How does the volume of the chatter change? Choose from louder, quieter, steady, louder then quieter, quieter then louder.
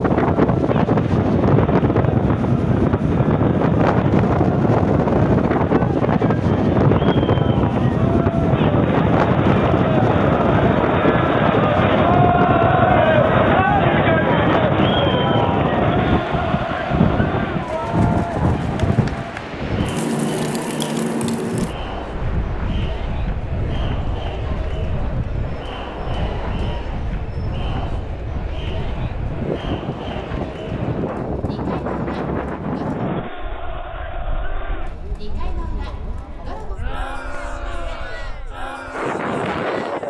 louder then quieter.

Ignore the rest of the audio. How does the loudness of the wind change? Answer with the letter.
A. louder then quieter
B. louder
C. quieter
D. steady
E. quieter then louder
C.